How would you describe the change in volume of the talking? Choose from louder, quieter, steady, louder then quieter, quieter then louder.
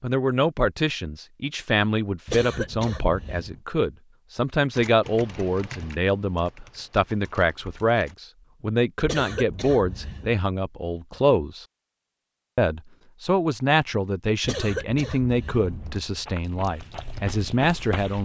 steady.